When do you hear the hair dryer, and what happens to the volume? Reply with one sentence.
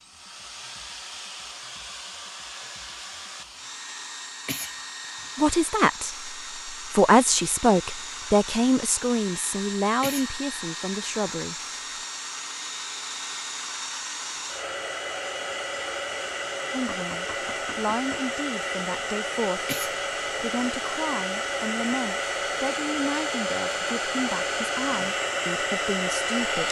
The hair dryer can be heard from 0.0 to 26.6 s, getting louder.